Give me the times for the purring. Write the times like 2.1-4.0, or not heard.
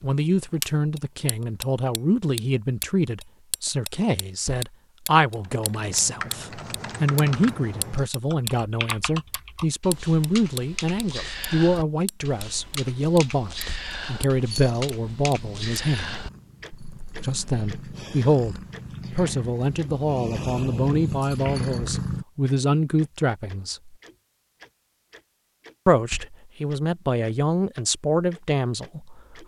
14.4-22.2.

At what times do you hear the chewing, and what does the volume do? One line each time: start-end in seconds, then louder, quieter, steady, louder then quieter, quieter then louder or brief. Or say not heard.
not heard.